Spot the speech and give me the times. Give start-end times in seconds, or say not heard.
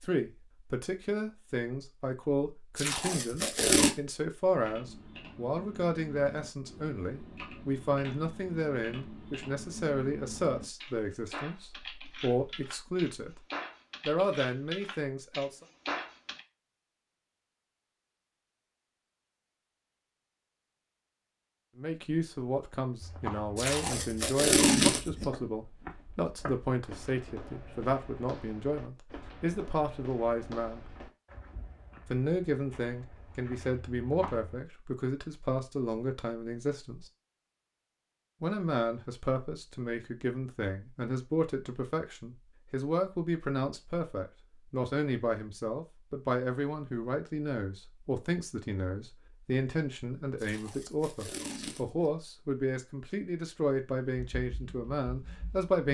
0.0-13.3, 14.1-15.7, 21.8-30.9, 32.1-37.0, 38.4-55.8.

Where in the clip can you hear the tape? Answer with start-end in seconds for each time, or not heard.
2.8-3.9, 23.6-25.3, 50.4-52.1.